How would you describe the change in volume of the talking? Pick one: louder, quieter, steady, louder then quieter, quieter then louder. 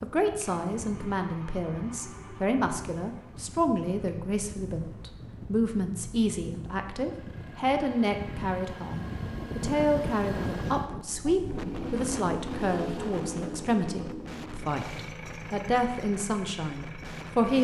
steady.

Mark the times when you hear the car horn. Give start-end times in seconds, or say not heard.
not heard.